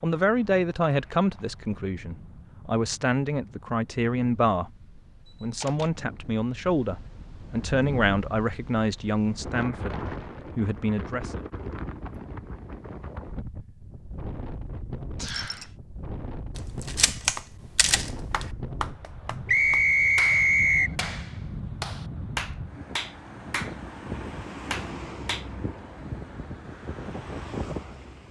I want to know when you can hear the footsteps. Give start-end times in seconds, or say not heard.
not heard.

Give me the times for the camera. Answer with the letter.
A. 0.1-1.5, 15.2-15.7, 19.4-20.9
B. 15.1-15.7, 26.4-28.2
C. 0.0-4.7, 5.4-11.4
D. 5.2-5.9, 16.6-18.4
D.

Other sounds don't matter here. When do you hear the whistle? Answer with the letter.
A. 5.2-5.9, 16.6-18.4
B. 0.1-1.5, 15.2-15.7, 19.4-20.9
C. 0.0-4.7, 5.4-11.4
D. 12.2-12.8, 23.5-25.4
B.